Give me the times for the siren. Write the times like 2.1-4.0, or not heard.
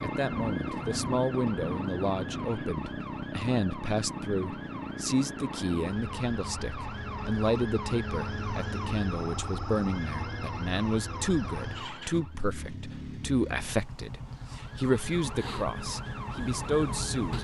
0.0-12.4, 14.3-17.3.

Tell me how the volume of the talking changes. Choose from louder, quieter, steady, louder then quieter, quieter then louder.
steady.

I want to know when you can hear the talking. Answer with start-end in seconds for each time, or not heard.
0.0-17.3.